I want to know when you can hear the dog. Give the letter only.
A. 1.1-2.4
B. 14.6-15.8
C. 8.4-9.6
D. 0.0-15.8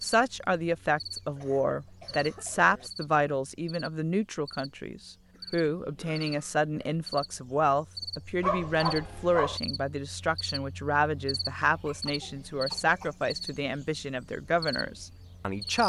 C.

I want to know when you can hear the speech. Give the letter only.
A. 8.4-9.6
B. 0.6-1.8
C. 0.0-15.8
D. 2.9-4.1
C.